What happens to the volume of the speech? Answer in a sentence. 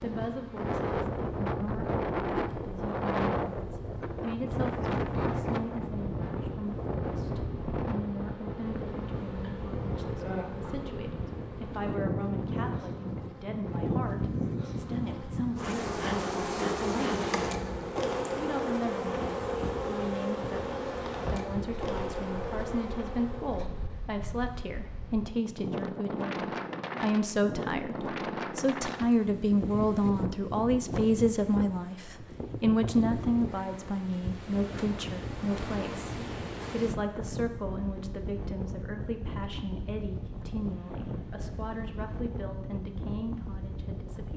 The volume of the speech goes up, then down.